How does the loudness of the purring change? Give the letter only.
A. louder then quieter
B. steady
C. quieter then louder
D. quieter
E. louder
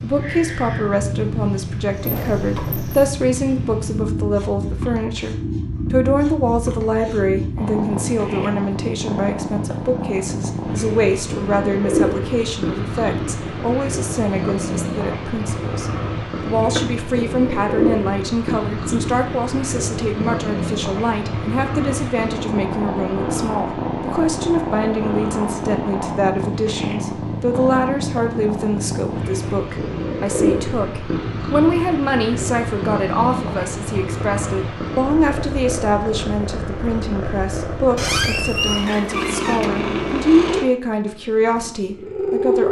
B.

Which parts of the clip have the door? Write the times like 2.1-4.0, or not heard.
2.0-3.1, 16.6-17.0, 38.0-39.7.